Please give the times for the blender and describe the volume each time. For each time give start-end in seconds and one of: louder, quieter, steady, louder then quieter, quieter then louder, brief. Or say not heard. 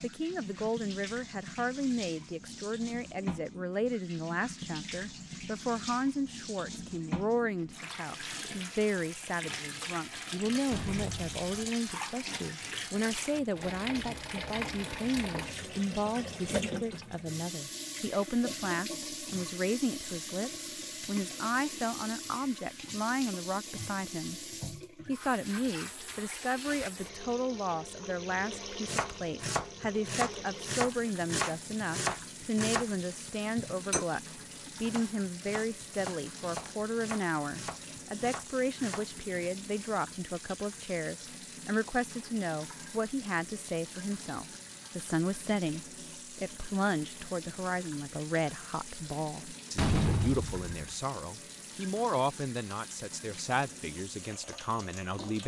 not heard.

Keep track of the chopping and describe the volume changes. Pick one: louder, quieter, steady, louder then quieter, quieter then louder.
quieter.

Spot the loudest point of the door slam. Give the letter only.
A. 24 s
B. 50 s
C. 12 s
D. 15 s
B.